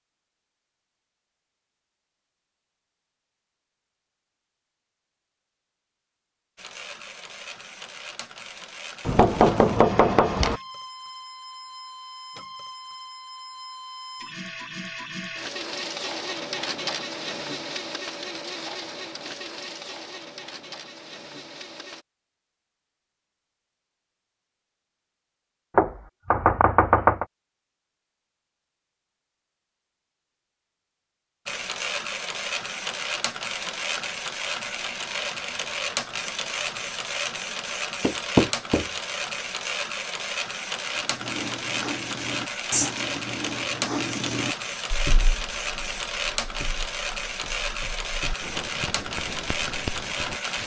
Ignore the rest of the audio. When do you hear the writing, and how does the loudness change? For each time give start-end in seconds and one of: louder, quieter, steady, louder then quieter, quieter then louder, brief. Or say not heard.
41.1-50.6 quieter then louder.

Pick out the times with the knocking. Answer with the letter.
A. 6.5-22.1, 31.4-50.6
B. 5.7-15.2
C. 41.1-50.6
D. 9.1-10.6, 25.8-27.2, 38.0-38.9
D.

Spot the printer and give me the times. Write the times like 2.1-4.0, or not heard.
6.5-22.1, 31.4-50.6.